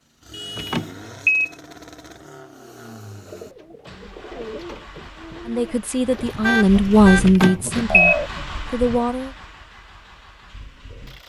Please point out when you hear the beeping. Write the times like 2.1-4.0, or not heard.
0.6-1.5, 7.2-8.2.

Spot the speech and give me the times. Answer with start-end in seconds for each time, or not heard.
5.5-9.3.